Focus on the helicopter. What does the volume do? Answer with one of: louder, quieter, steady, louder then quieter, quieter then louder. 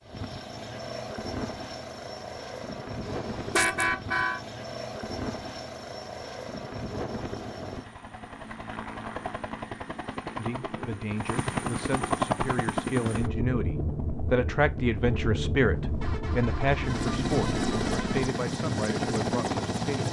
louder.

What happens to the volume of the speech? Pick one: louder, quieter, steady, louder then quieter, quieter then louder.
louder then quieter.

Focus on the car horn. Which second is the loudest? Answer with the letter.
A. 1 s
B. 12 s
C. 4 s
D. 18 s
C.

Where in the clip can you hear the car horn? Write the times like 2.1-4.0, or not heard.
3.0-4.4, 15.7-18.4.